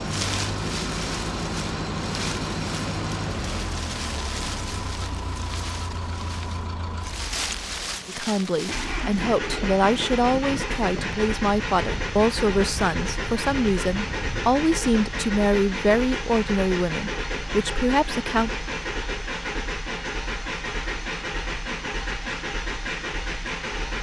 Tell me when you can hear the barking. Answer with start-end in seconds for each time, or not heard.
not heard.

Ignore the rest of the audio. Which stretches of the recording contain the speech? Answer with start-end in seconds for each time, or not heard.
8.1-18.5.